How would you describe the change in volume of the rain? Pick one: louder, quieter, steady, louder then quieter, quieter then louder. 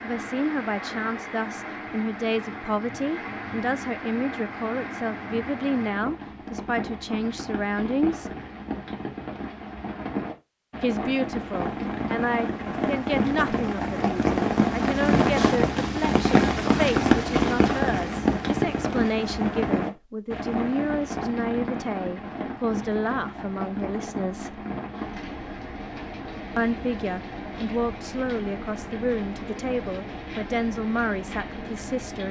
louder then quieter.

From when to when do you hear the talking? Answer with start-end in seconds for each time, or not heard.
0.0-8.3, 10.8-24.6, 26.6-32.2.